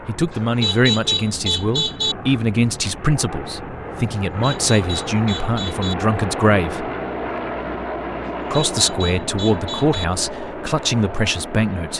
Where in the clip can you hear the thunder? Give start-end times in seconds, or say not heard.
not heard.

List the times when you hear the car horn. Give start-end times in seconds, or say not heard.
0.3-2.1, 4.2-6.0, 8.2-10.1.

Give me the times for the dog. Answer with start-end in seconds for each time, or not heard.
not heard.